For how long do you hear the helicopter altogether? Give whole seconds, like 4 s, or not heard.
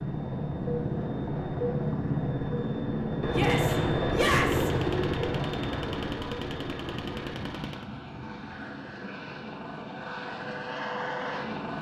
12 s.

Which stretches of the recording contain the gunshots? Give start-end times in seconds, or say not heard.
3.5-7.8.